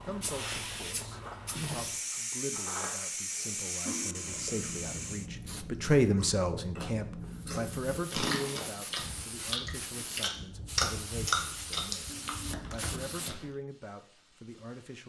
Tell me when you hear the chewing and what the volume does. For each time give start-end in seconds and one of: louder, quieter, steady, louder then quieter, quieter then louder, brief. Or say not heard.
4.2-13.5 louder then quieter.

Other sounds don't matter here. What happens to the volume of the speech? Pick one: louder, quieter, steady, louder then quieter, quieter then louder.
louder then quieter.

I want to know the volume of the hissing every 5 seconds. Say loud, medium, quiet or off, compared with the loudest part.
loud, medium, medium.